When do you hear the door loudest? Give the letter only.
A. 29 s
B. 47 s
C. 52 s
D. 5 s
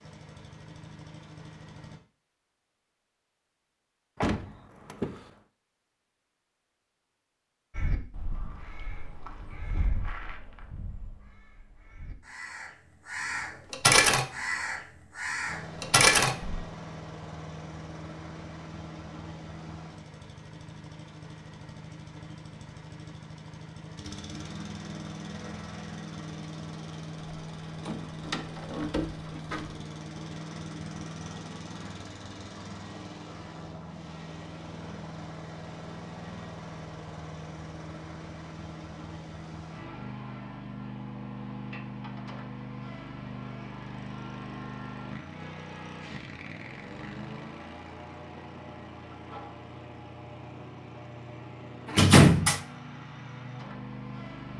C.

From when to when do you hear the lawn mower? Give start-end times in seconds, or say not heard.
0.0-2.0, 15.4-54.5.